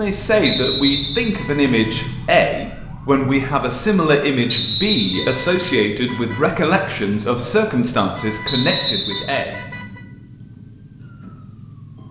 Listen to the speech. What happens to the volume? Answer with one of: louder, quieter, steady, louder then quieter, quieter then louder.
steady.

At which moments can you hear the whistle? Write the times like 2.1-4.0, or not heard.
0.5-1.3, 4.5-5.3, 8.4-9.3.